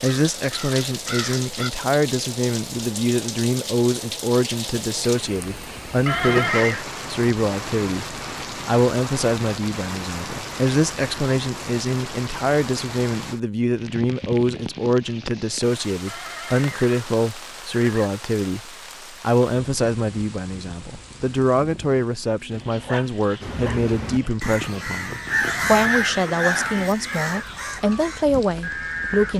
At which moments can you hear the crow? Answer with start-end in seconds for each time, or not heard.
0.0-1.7, 23.4-29.3.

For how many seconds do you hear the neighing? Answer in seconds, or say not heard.
5 s.